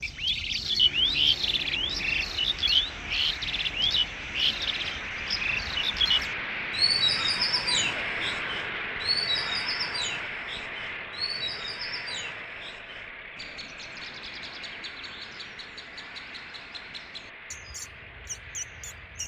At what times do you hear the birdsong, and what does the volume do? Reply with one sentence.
You can hear the birdsong from 0.0 to 19.2 s, getting quieter.